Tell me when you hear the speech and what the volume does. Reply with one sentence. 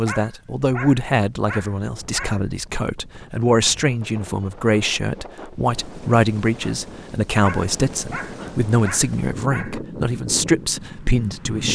You can hear the speech from 0.0 to 11.6 s, at a steady volume.